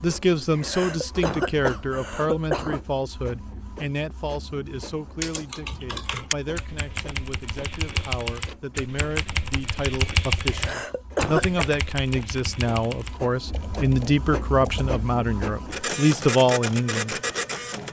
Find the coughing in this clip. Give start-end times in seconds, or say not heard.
0.5-2.8, 10.4-11.7.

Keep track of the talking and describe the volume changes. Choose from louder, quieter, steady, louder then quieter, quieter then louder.
quieter then louder.